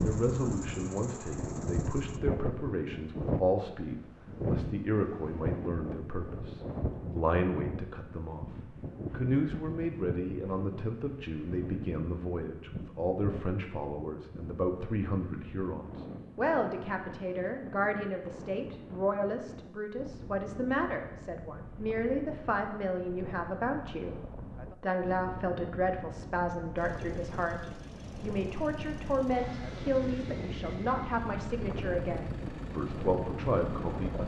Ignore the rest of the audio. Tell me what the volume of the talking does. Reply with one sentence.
The volume of the talking stays about the same.